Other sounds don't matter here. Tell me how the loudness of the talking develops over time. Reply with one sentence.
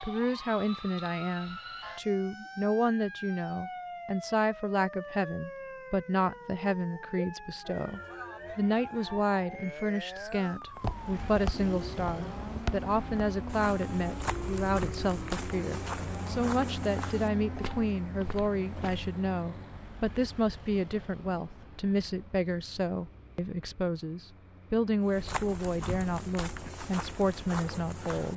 The volume of the talking stays about the same.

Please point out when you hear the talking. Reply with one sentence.
The talking can be heard from 0.0 to 28.3 s.